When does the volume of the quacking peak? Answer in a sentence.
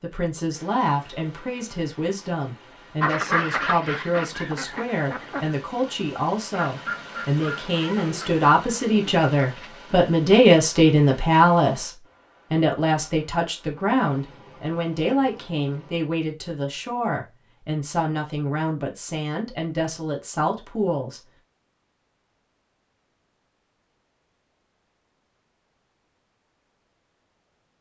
The volume of the quacking peaks at 3 seconds.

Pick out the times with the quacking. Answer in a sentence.
You can hear the quacking from 3.0 to 5.6 s and from 6.5 to 9.7 s.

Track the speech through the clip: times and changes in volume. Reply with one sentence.
You can hear the speech from 0.0 to 21.2 s, getting louder then quieter.